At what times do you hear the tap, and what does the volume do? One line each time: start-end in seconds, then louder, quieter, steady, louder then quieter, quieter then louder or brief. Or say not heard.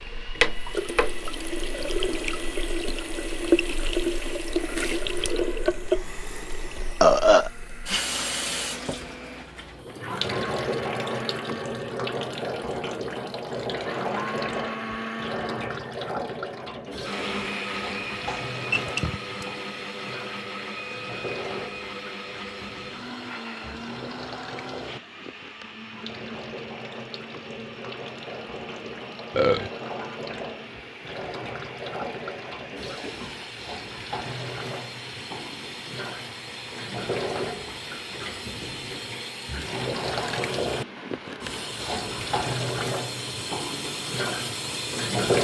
0.0-45.3 quieter then louder.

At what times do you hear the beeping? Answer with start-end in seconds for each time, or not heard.
18.2-19.4.